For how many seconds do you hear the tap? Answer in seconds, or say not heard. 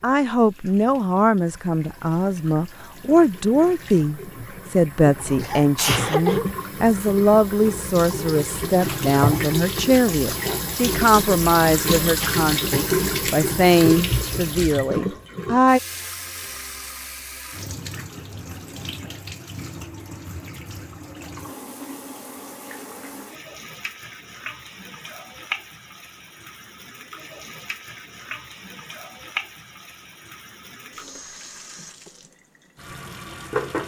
34 s.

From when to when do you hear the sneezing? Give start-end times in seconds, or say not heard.
5.4-6.5.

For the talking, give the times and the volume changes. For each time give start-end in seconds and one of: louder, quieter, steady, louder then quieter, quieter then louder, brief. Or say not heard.
0.0-15.8 steady.